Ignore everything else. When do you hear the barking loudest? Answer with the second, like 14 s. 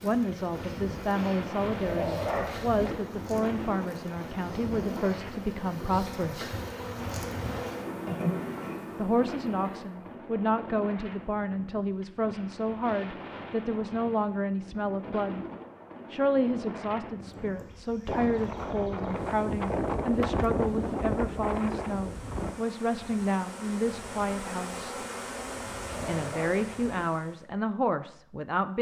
2 s.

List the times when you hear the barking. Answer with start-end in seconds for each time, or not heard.
1.6-3.0, 25.6-27.0.